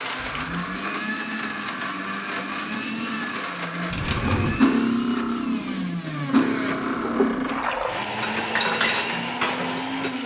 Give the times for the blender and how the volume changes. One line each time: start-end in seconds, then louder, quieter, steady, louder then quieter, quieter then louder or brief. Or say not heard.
0.0-10.2 steady.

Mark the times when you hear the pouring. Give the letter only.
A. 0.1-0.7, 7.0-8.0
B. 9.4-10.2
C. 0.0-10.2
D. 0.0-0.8
A.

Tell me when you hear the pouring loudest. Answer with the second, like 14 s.
8 s.